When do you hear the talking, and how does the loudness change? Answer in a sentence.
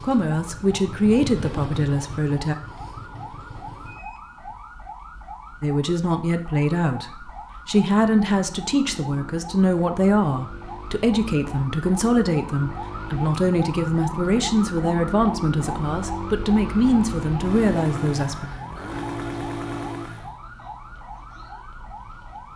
You can hear the talking briefly from 0.0 to 2.5 s; and from 5.6 to 18.4 s, at a steady volume.